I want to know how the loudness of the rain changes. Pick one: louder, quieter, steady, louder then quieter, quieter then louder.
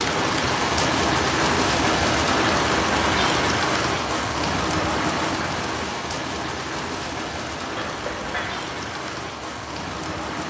quieter.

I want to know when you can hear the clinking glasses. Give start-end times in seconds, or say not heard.
7.8-8.6.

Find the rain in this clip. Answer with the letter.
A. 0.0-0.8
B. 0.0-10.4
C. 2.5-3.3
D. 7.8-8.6
B.